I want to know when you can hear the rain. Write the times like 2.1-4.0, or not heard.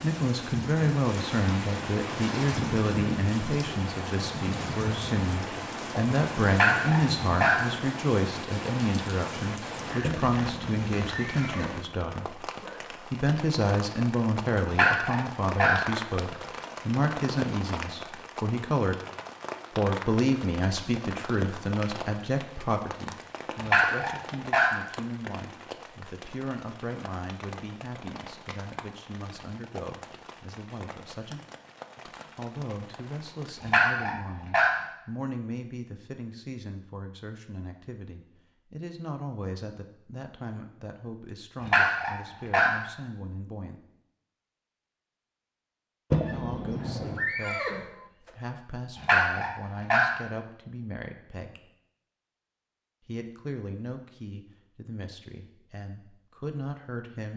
0.0-33.8.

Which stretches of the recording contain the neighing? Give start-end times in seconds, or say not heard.
10.0-12.8, 46.1-48.3.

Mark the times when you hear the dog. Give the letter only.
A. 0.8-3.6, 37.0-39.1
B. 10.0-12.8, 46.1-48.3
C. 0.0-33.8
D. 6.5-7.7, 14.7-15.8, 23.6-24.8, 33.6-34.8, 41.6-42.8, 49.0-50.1
D.